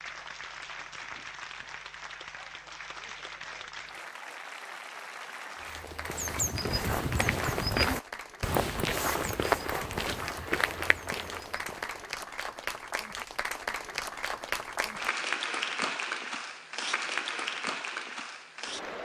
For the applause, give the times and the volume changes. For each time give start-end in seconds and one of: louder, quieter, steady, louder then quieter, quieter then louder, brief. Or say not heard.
0.0-19.0 louder.